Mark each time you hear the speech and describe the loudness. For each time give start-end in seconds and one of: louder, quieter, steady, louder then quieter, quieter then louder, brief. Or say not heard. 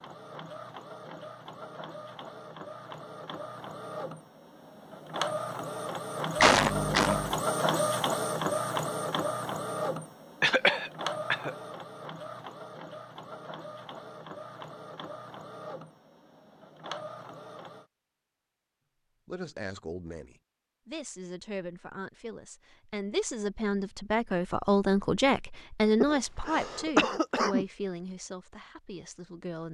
19.2-29.7 louder then quieter.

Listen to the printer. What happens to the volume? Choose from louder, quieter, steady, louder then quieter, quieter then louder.
louder then quieter.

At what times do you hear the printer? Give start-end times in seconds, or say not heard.
0.0-17.9.